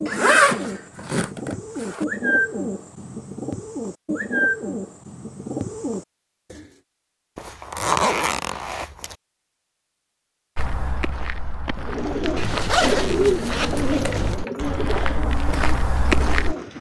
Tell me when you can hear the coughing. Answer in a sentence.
The coughing can't be heard in this clip.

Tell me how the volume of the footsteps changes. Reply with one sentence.
The volume of the footsteps goes up.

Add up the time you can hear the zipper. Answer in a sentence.
The zipper can be heard for 6 seconds in total.